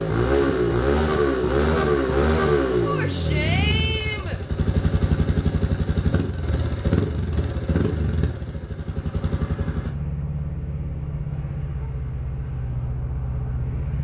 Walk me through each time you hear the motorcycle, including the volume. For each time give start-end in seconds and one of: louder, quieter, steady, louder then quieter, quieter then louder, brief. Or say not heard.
0.0-13.9 quieter.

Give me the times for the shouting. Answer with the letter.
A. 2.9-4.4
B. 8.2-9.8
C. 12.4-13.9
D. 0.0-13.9
A.